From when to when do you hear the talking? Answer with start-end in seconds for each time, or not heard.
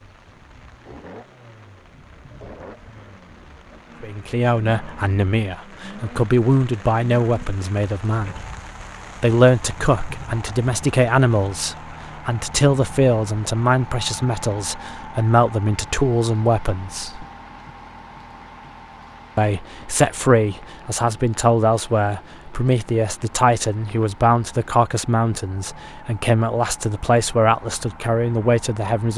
4.0-8.4, 9.2-17.2, 19.4-29.1.